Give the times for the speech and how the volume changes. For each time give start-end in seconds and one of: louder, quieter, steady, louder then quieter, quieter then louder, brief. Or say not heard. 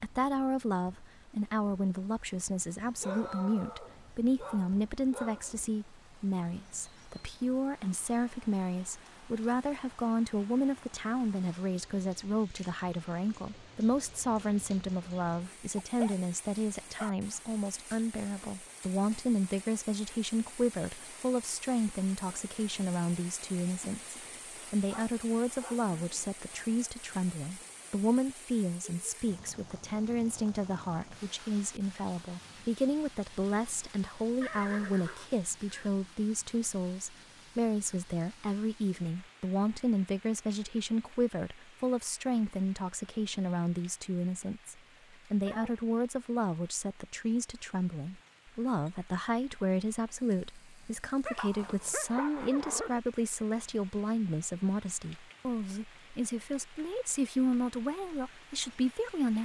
0.0-59.3 steady.